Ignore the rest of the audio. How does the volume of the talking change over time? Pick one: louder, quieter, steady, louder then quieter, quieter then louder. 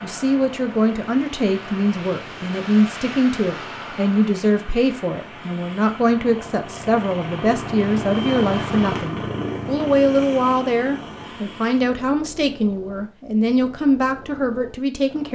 steady.